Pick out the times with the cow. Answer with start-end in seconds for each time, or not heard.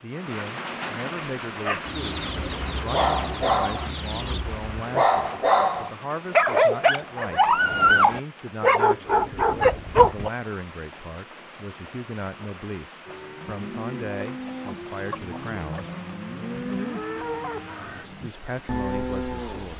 13.1-19.7.